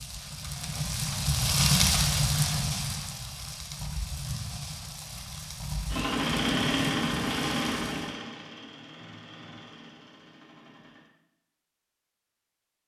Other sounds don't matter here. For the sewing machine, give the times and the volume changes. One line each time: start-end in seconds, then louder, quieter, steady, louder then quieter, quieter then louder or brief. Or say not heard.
5.9-11.1 quieter.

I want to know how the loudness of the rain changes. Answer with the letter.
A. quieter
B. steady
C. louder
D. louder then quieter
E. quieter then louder
A.